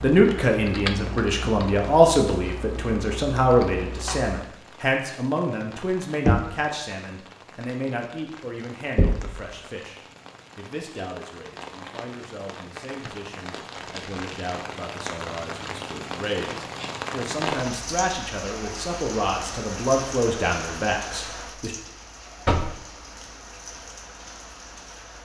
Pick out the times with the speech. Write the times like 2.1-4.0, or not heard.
0.0-21.8.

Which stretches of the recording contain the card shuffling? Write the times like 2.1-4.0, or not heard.
13.0-14.6.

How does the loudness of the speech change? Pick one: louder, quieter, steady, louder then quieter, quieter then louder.
quieter then louder.